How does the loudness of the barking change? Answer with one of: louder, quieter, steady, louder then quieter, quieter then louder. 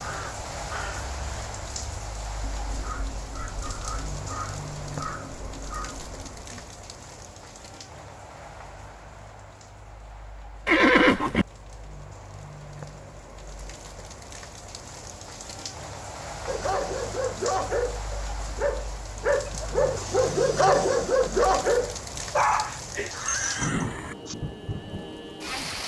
louder then quieter.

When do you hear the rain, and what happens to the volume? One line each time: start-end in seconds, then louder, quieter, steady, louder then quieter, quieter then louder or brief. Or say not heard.
0.0-25.8 quieter then louder.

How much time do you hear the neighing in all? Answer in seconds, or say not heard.
3 s.